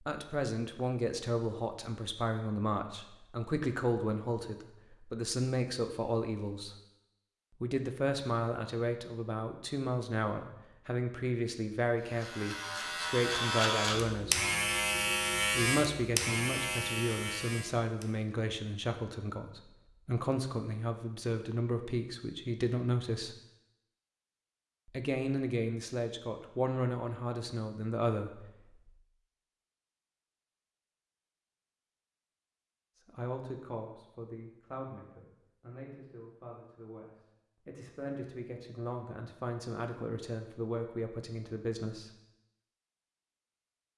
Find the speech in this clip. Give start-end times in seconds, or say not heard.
0.0-6.8, 7.6-14.5, 15.6-23.4, 24.9-28.8, 33.0-42.1.